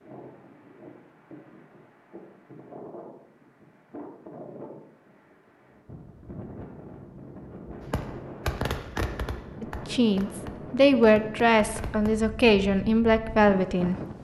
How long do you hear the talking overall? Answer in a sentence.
The talking can be heard for 4 seconds in total.